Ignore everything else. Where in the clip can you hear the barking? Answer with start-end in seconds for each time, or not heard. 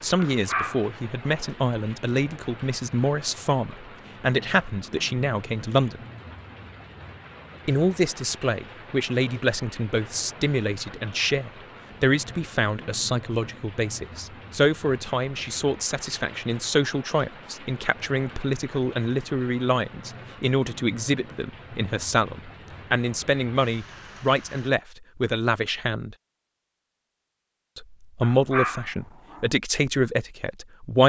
0.1-1.4, 28.2-29.4.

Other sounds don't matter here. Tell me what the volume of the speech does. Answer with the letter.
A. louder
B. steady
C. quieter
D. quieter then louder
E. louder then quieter
B.